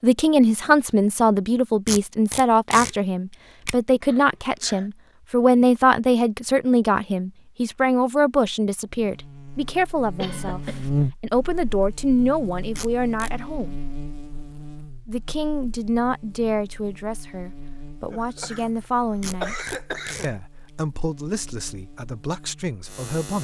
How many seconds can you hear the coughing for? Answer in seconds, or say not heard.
3 s.